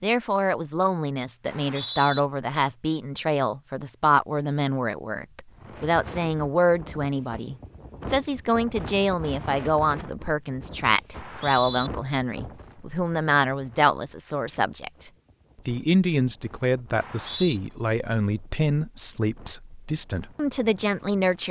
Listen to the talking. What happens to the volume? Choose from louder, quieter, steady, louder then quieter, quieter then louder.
steady.